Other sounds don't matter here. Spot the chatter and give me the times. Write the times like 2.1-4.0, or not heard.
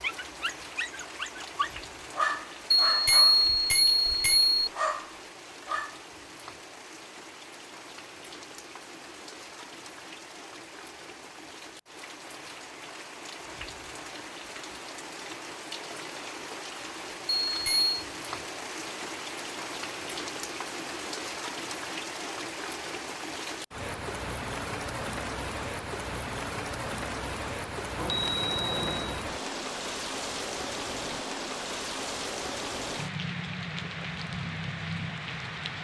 not heard.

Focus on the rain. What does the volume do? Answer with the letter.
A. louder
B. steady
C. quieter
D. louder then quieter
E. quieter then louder
A.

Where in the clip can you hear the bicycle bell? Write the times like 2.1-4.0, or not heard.
2.9-4.7, 17.4-17.9, 27.9-29.2.